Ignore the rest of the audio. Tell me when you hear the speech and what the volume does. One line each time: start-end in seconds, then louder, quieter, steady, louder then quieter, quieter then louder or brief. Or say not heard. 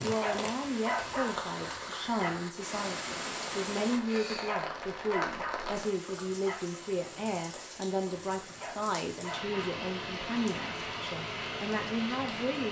0.0-12.6 steady.